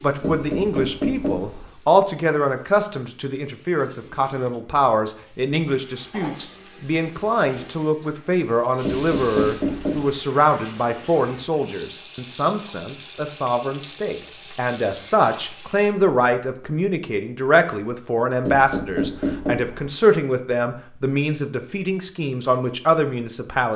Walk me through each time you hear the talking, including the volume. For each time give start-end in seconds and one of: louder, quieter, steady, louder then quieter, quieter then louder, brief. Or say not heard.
0.0-23.7 steady.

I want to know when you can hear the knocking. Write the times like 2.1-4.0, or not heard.
0.2-1.7, 8.8-10.2, 18.4-19.9.